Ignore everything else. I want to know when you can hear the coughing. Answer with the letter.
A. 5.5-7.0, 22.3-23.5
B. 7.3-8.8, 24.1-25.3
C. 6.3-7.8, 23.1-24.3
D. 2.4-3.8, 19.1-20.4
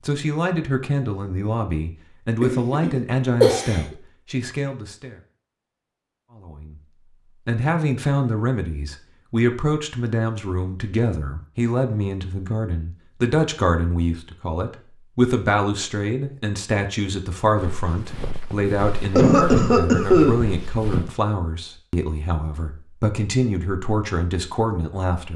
D.